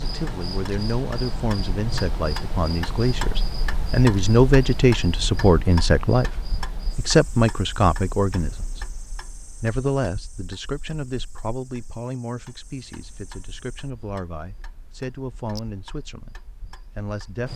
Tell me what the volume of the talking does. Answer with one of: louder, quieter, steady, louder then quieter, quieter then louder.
louder then quieter.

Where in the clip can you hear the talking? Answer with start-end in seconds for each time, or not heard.
0.0-17.5.